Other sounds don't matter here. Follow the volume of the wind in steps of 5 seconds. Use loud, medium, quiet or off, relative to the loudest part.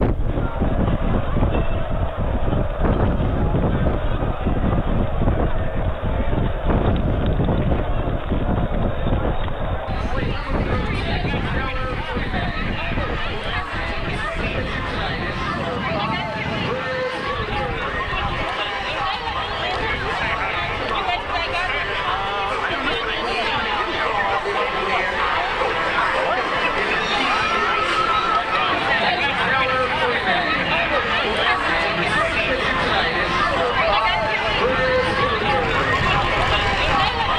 loud, loud, medium, medium, quiet, quiet, quiet, medium.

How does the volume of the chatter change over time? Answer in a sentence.
The volume of the chatter goes up.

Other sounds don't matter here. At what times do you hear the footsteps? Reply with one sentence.
The footsteps can't be heard in this clip.